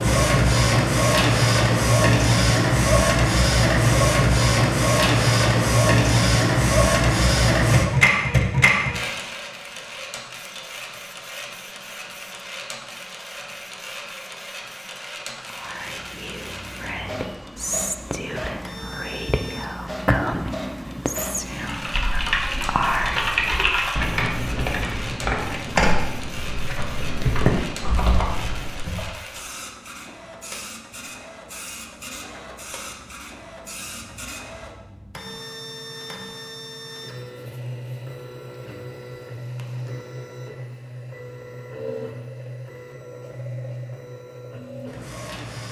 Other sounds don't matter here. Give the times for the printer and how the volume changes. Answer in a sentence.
You can hear the printer from 0.0 to 45.6 s, getting quieter.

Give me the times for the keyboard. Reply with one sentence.
The keyboard can be heard from 21.6 to 29.1 s.